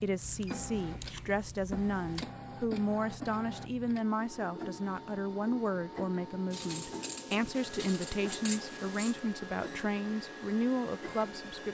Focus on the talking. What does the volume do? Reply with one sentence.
The loudness of the talking stays about the same.